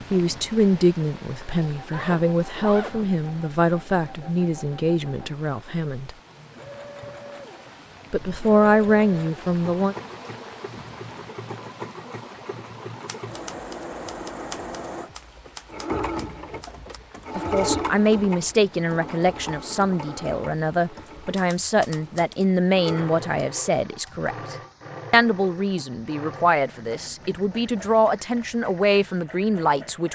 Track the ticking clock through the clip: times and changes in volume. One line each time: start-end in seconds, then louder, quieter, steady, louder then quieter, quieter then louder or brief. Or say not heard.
not heard.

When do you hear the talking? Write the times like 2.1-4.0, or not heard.
0.1-6.1, 8.1-9.9, 17.4-30.1.